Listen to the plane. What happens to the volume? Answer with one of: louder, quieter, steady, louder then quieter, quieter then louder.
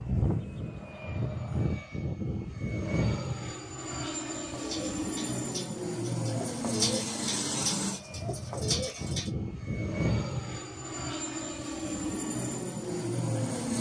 steady.